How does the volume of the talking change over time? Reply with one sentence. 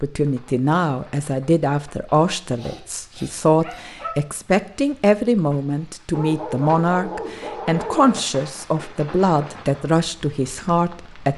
The loudness of the talking stays about the same.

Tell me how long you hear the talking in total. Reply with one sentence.
The talking can be heard for 11 seconds in total.